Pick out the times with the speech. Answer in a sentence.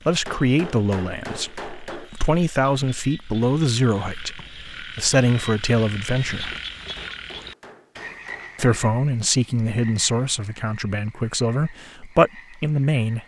The speech can be heard from 0.1 to 6.5 s and from 8.6 to 13.2 s.